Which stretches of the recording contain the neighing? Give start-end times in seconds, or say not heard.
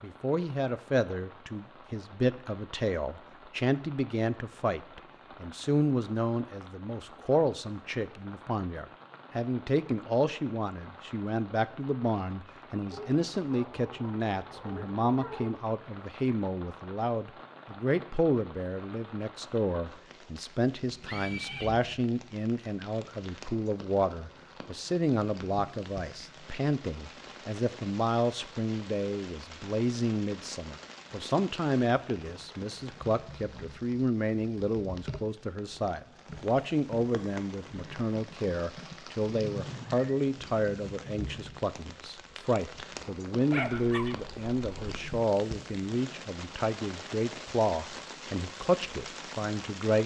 21.1-21.7, 39.2-40.2.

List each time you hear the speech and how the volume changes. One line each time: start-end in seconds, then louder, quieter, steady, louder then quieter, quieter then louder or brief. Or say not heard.
0.0-50.0 steady.